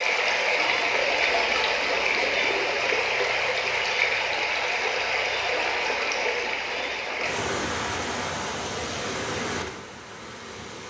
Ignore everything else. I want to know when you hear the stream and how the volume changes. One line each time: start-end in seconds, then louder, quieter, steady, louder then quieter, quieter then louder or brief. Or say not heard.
0.0-10.8 quieter.